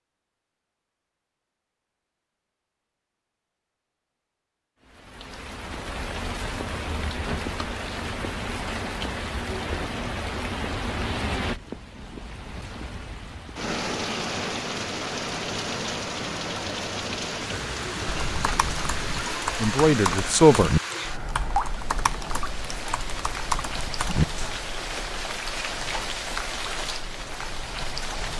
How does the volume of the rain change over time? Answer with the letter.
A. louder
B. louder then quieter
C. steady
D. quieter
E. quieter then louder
C.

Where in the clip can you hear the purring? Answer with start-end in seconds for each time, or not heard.
not heard.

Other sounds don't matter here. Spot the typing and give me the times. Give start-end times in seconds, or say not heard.
18.1-24.6.